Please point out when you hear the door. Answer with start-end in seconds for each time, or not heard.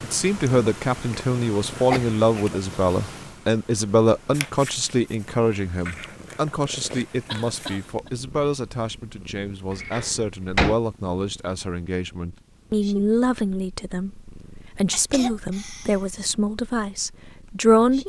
9.8-10.8.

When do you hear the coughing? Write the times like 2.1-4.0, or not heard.
1.9-3.3, 7.2-8.1, 14.9-16.1.